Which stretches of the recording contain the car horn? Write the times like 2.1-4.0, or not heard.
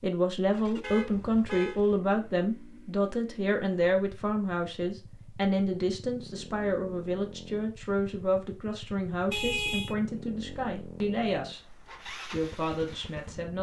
0.8-1.8, 9.3-9.9.